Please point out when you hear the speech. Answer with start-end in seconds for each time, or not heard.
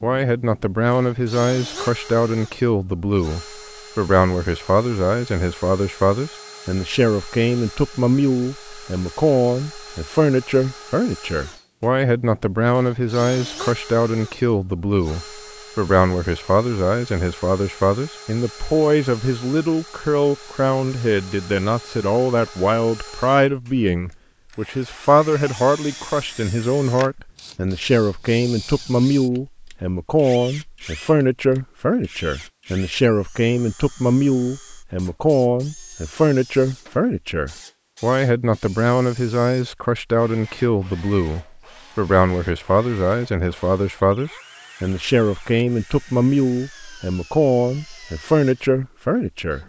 0.0-49.6.